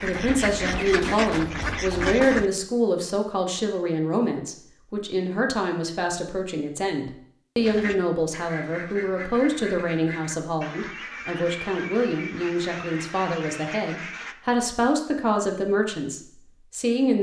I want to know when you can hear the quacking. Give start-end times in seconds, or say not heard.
0.0-2.5, 7.6-14.3.